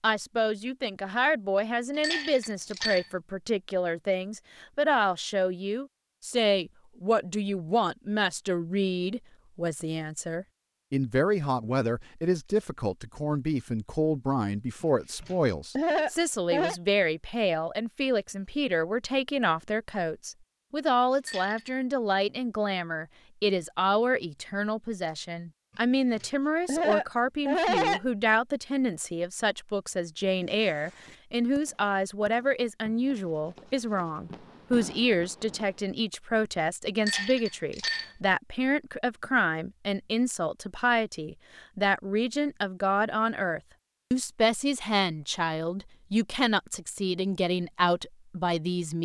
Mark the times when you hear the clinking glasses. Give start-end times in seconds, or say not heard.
2.0-3.1, 21.1-21.8, 37.0-38.1.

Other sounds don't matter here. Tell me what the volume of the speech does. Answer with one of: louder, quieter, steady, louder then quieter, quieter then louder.
steady.